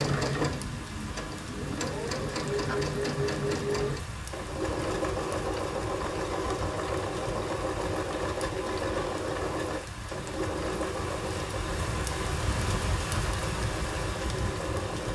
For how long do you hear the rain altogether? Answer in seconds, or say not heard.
15 s.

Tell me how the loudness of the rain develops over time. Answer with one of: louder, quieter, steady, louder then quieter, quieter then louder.
louder.